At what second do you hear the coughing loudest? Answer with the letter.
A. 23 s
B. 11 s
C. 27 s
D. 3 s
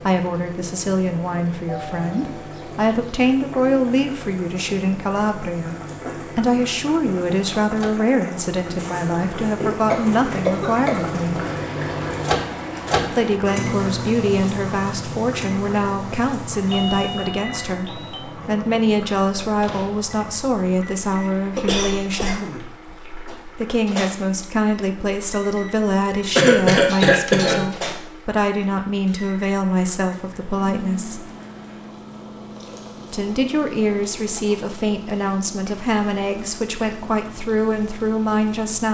C.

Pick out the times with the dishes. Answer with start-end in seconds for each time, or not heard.
not heard.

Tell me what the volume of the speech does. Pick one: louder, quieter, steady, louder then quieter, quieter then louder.
steady.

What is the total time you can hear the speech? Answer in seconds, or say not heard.
34 s.